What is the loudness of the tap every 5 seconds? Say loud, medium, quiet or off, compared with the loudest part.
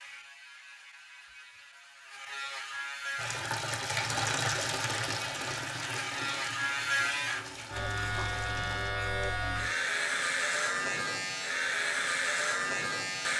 loud, medium, off.